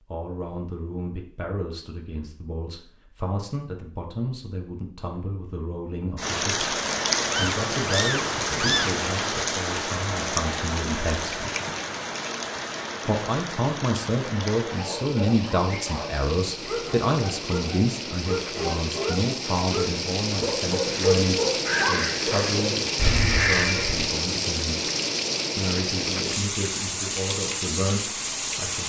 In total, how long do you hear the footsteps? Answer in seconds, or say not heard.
not heard.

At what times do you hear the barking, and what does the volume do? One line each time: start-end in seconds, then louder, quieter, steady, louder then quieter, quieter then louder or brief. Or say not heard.
14.6-22.9 louder.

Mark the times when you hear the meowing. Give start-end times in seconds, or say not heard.
7.2-8.9.